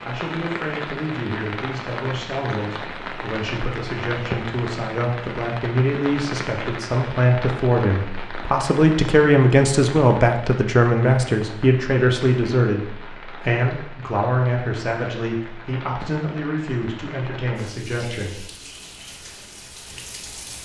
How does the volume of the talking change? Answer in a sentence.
The loudness of the talking goes up, then down.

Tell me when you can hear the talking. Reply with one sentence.
You can hear the talking from 0.1 to 18.4 s.